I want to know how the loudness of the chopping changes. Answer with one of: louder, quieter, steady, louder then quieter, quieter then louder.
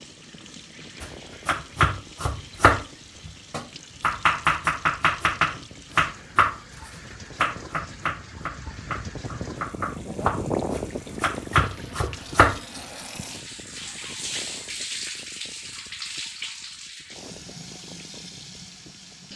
quieter then louder.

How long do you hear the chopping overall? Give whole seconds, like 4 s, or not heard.
11 s.